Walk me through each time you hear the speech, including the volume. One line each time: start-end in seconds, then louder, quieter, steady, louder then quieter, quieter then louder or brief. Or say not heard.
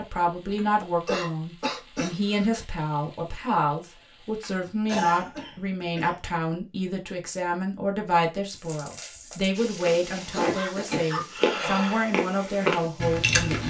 0.0-13.6 steady.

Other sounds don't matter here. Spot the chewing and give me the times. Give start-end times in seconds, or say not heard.
9.6-13.6.